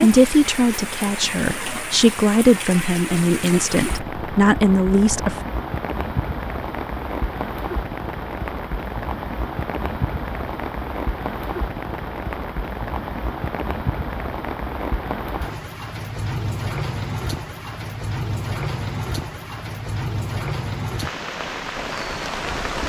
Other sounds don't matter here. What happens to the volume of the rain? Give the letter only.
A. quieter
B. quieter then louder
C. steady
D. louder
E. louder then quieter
C.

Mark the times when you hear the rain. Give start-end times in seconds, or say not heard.
0.0-22.8.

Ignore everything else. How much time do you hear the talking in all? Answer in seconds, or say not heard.
5 s.